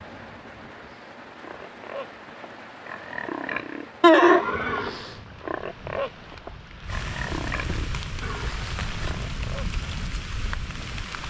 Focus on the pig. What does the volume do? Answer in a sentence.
The loudness of the pig goes up, then down.